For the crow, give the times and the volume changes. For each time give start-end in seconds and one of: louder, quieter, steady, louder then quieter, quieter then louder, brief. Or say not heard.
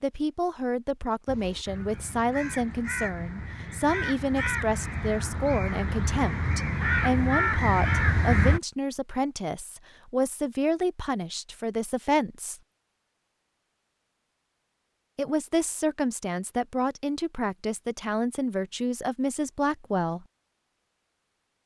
1.2-8.6 louder.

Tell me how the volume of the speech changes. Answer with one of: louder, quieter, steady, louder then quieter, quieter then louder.
steady.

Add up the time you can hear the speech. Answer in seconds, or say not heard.
18 s.